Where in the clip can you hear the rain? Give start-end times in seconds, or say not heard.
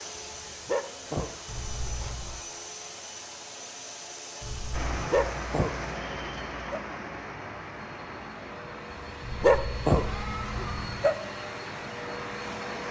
4.7-12.8.